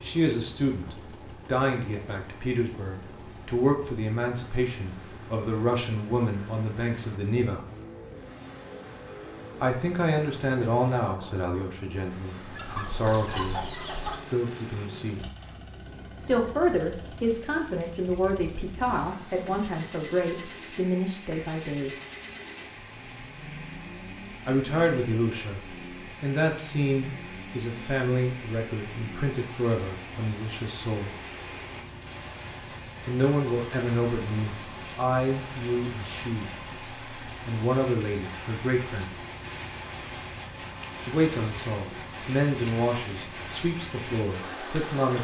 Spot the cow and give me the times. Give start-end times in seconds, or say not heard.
not heard.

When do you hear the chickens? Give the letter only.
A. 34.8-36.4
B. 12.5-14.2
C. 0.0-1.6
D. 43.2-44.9
B.